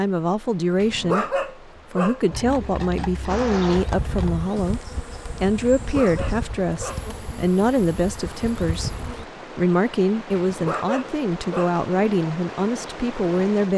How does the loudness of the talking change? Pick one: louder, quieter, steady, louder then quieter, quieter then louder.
steady.